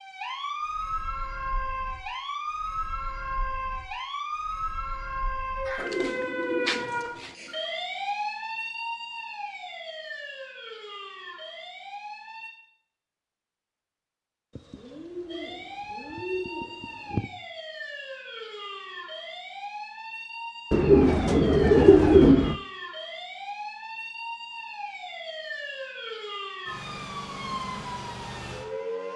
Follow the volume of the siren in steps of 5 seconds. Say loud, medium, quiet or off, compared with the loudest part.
loud, loud, medium, medium, medium, loud.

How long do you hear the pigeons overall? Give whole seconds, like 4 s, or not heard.
6 s.